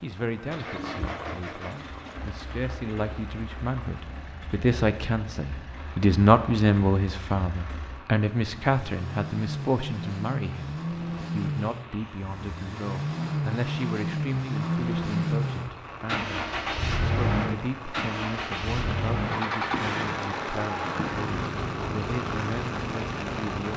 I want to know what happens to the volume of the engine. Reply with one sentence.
The loudness of the engine goes up.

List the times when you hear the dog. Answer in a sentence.
The dog can't be heard in this clip.